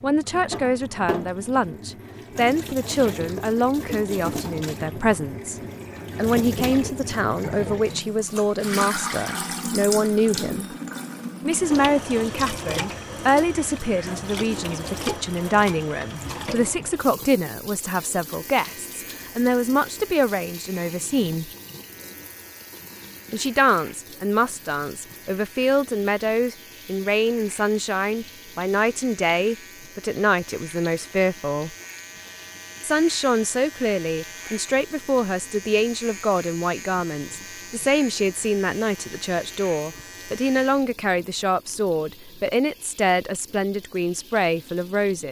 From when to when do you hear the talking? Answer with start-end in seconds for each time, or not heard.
0.0-5.5, 6.2-10.7, 11.4-21.5, 23.3-31.7, 32.8-45.2.